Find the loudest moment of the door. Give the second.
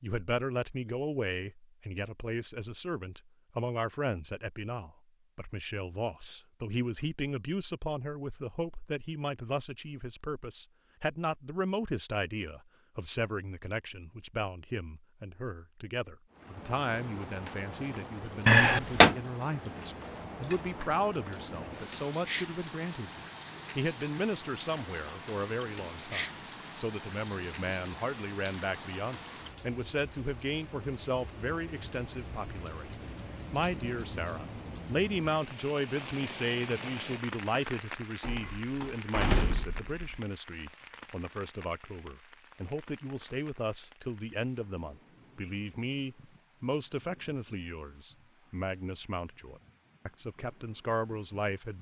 19 s.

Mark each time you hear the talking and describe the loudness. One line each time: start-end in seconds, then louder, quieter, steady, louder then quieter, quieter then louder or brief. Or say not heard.
0.0-51.7 steady.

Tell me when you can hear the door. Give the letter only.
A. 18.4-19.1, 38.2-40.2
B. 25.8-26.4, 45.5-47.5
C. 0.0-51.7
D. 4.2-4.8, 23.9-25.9
A.